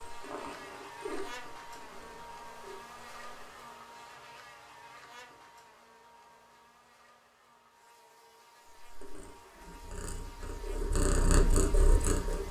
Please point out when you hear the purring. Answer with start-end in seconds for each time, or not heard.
0.0-3.5, 8.8-12.4.